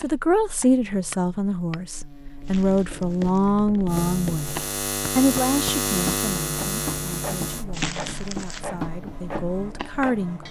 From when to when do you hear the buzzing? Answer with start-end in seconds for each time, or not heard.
0.0-10.4.